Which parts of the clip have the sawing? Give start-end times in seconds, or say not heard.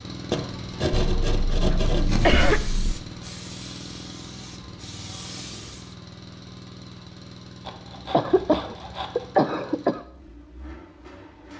0.3-2.5, 7.6-9.3.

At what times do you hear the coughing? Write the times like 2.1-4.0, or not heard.
0.9-3.0, 8.1-10.0.